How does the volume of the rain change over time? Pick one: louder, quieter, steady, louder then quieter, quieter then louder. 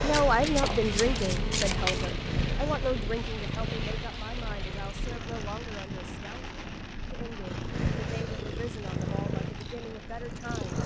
quieter.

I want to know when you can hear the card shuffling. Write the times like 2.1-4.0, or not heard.
0.1-2.1.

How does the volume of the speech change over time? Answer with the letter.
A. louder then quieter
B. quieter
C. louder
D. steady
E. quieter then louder
B.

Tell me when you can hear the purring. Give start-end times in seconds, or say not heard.
0.0-5.5, 7.5-10.8.